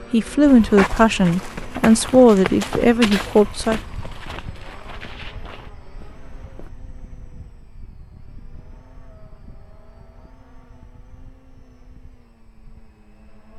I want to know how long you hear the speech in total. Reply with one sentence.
You can hear the speech for 4 seconds altogether.